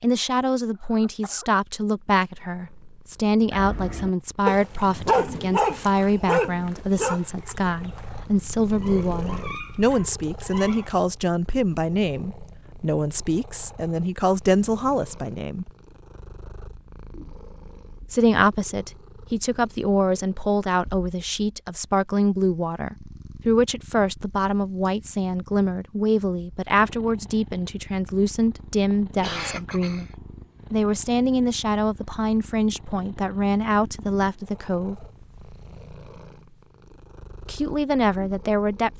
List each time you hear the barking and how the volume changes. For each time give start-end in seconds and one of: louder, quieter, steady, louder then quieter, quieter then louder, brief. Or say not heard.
3.5-11.0 quieter then louder.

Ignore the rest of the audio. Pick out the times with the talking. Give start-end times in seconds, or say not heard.
0.0-15.7, 18.1-30.1, 30.7-35.0, 37.5-38.9.